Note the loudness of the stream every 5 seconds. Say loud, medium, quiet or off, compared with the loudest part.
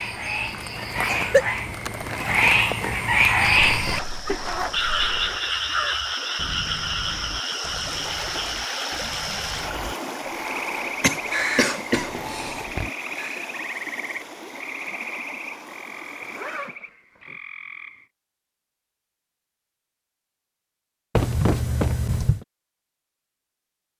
medium, loud, loud, medium, off.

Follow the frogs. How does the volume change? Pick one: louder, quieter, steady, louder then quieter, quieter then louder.
quieter.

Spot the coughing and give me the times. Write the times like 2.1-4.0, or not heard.
0.7-1.4, 11.0-12.7, 21.1-22.4.